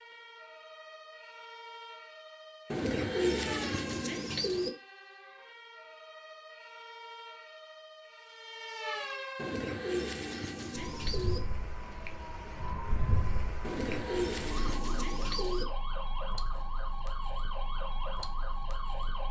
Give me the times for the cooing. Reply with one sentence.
The cooing can be heard from 2.7 to 4.7 s, from 9.3 to 11.4 s and from 13.6 to 15.7 s.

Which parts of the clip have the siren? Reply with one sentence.
The siren can be heard from 0.0 to 19.2 s.